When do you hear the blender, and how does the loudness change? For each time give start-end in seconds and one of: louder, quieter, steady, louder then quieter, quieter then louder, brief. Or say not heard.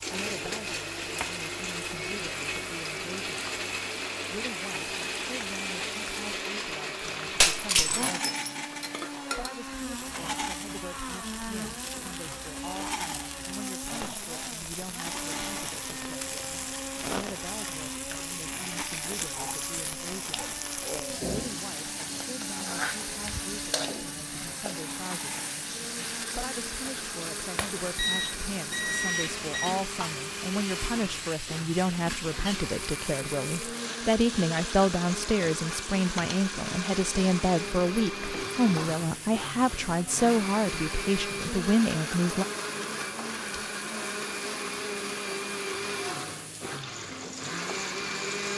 0.0-48.5 quieter then louder.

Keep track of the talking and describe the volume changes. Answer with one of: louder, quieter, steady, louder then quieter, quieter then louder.
louder.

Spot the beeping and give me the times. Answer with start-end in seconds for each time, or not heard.
27.9-29.8.